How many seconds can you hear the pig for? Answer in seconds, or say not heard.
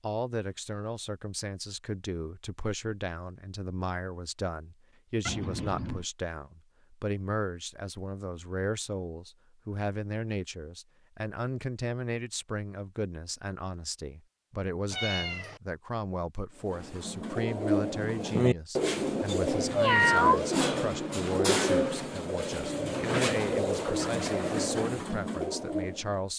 not heard.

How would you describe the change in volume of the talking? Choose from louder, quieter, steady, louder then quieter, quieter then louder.
steady.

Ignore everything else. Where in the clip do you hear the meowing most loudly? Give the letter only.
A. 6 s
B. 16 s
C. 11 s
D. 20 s
D.